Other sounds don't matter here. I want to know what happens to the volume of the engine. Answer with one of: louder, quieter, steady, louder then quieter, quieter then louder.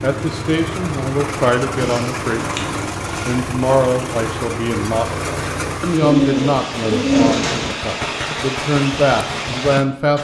steady.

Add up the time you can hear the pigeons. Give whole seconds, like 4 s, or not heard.
3 s.